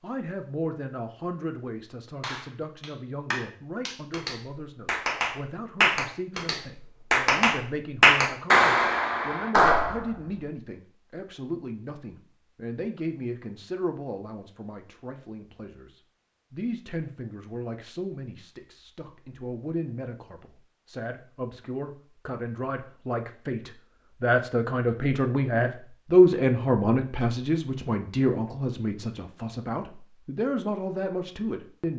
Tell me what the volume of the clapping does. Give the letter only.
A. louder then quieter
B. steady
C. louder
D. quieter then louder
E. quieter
C.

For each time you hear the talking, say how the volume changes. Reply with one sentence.
The talking can be heard from 0.0 to 31.9 s, getting louder.